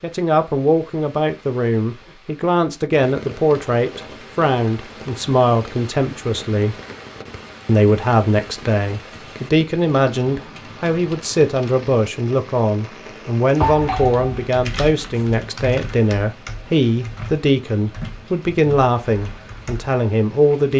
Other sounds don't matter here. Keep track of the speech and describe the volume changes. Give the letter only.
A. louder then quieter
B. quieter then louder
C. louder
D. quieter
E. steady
E.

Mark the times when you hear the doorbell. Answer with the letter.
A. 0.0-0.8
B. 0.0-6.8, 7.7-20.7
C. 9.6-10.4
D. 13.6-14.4
D.